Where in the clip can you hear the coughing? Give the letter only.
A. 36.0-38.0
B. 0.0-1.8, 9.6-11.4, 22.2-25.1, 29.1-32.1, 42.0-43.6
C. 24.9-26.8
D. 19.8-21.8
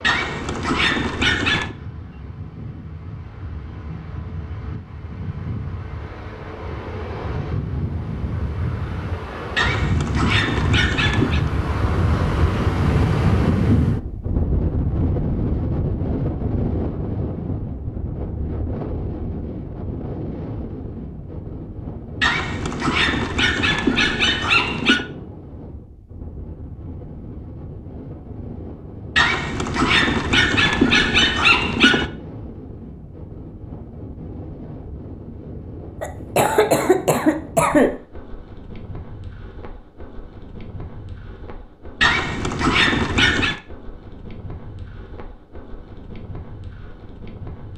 A.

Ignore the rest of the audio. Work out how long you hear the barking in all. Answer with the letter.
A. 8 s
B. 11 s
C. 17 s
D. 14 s
B.